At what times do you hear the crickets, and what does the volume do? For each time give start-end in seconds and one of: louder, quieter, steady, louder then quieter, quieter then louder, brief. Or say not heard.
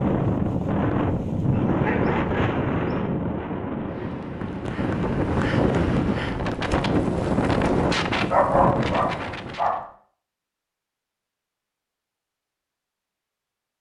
not heard.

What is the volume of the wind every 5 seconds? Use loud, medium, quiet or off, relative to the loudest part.
loud, loud, off.